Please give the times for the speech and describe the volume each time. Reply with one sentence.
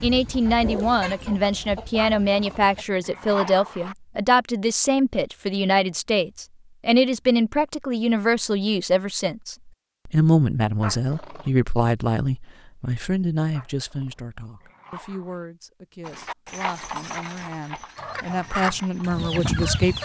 You can hear the speech from 0.0 to 20.0 s, getting quieter.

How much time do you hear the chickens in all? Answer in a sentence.
The chickens can be heard for 5 seconds in total.